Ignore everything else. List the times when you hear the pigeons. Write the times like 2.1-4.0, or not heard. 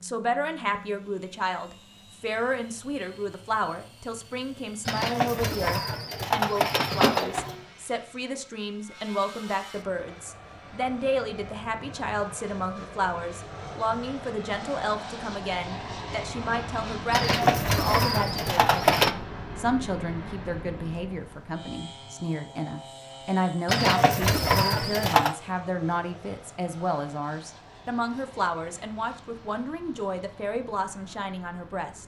4.8-7.6, 17.1-19.1, 23.6-25.4.